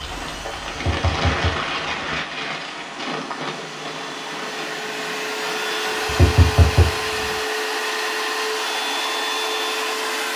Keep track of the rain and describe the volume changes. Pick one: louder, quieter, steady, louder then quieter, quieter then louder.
quieter.